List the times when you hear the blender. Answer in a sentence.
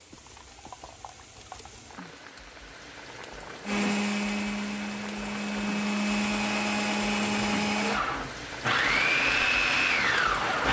The blender can be heard from 3.6 to 10.6 s.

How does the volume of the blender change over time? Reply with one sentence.
The loudness of the blender goes up.